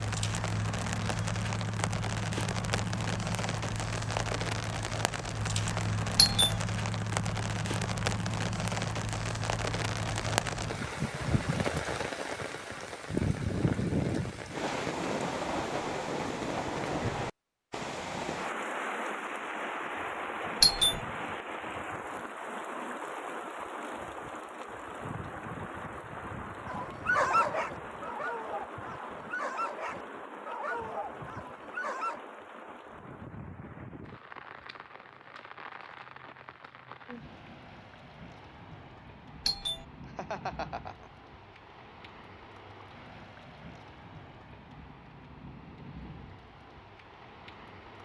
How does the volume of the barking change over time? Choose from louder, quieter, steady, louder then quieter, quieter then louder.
quieter.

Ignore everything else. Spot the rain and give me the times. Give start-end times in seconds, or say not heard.
0.0-48.0.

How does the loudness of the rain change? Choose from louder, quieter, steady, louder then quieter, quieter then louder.
quieter.